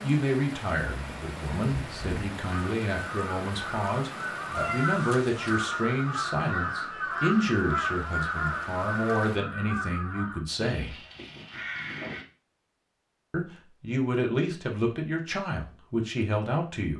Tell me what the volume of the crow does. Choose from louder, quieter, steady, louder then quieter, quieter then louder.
louder then quieter.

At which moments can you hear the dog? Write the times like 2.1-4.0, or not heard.
not heard.